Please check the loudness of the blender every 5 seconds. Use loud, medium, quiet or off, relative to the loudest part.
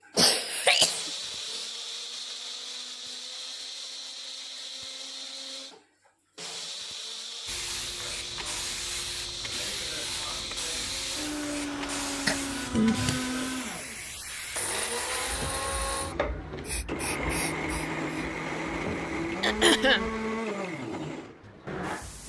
medium, medium, loud, loud, loud.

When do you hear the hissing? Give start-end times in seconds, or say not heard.
7.5-20.4.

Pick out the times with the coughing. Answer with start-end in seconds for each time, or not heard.
0.1-1.6, 12.2-13.2, 19.4-20.1.